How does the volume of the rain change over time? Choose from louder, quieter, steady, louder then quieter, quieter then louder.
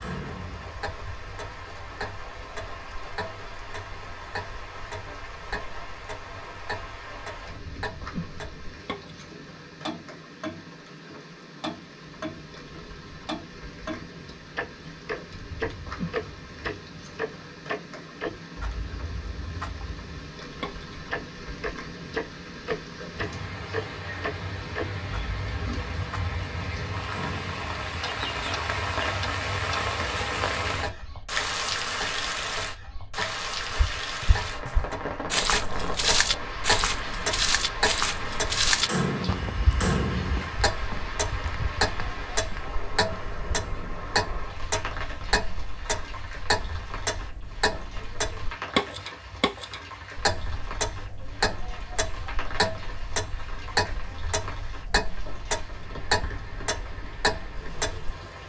louder then quieter.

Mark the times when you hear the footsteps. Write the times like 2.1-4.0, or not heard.
33.7-43.5.